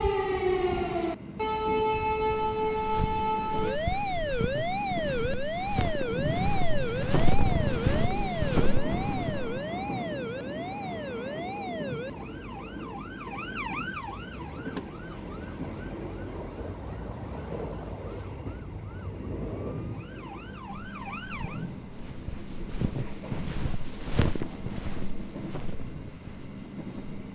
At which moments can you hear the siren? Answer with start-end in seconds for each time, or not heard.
0.0-21.7.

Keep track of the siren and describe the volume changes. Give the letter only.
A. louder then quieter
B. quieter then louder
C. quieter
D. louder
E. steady
C.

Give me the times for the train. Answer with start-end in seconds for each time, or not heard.
0.0-27.3.